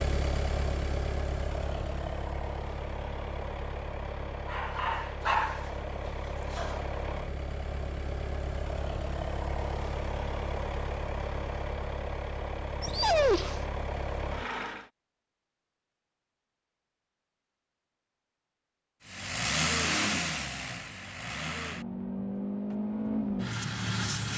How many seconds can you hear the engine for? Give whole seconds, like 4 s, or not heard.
20 s.